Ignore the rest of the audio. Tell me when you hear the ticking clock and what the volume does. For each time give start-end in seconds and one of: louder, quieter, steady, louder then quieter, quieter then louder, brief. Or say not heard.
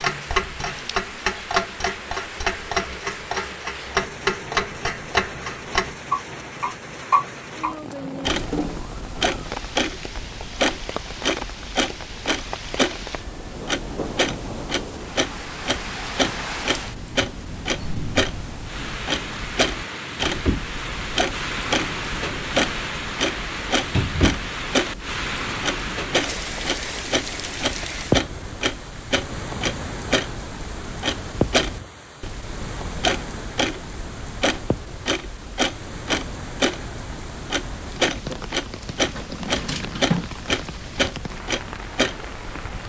0.0-42.8 steady.